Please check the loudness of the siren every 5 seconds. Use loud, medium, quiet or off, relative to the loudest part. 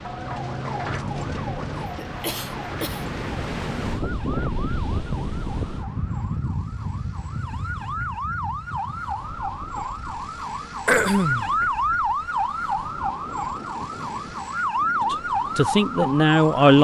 medium, medium, loud, loud.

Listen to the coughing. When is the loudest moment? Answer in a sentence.
The volume of the coughing peaks at 11 seconds.